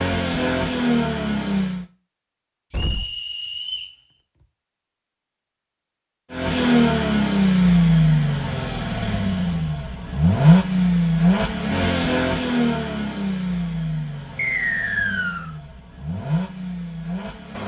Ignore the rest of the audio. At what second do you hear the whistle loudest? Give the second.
15 s.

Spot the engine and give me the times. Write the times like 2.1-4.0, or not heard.
0.0-1.9, 6.3-17.6.